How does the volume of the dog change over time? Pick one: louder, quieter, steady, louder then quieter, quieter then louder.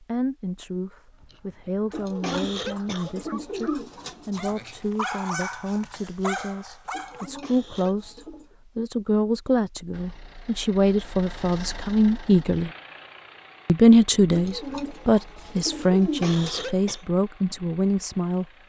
louder.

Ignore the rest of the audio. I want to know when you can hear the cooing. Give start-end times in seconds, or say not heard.
1.9-4.6, 6.9-8.6, 14.3-16.7.